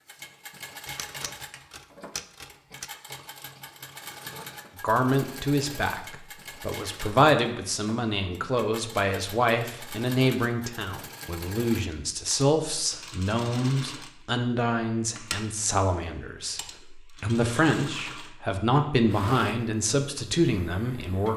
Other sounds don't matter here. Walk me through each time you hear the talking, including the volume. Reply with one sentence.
The talking can be heard from 4.8 to 21.3 s, at a steady volume.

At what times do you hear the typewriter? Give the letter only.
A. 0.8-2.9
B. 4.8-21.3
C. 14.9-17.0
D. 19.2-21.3
A.